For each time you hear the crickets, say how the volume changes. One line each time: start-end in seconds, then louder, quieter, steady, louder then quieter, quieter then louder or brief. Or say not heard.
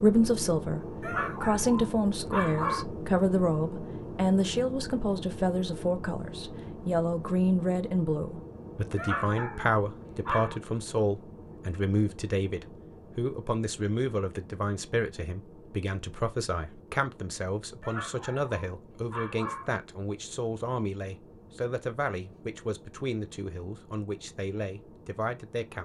not heard.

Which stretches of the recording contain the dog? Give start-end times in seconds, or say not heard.
1.0-2.9, 8.9-10.6, 17.8-19.8.